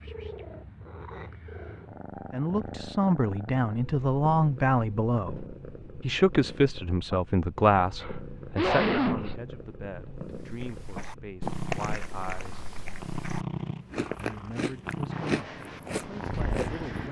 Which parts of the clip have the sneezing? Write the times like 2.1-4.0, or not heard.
8.0-9.4.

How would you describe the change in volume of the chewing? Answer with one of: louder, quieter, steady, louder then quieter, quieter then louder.
quieter then louder.